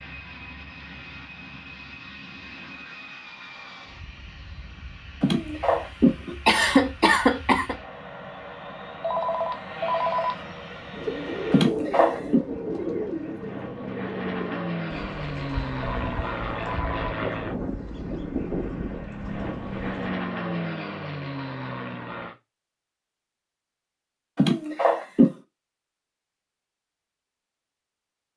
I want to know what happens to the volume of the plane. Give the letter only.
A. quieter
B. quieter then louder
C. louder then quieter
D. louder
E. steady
D.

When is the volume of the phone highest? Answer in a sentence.
The volume of the phone peaks at 10 seconds.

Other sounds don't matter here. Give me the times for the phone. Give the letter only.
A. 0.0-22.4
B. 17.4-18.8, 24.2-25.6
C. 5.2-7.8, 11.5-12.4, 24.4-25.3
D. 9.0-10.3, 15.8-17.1
D.